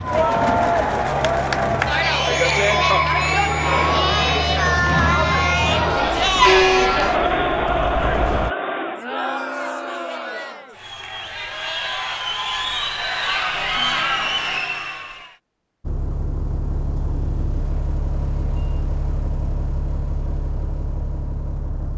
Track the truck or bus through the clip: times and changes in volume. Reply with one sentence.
You can hear the truck or bus from 0.0 to 8.6 s, getting louder; and from 15.8 to 21.9 s, at a steady volume.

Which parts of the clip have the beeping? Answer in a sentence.
You can hear the beeping from 2.3 to 3.8 s.